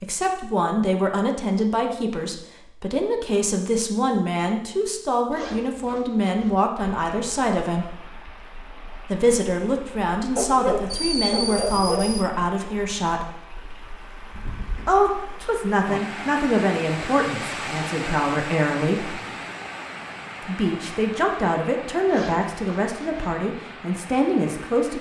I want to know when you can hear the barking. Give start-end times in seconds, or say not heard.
10.3-12.3.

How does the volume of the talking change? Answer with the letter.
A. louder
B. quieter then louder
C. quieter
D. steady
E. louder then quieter
D.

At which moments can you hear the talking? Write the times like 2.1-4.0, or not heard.
0.0-7.9, 9.1-13.2, 14.8-19.2, 20.4-24.9.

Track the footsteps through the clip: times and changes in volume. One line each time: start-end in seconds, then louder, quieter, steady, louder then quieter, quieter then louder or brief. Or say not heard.
not heard.